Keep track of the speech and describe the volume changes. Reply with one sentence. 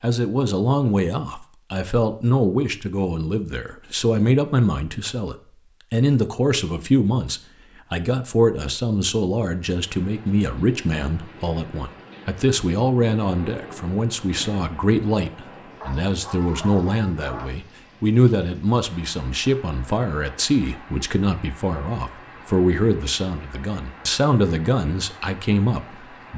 The loudness of the speech stays about the same.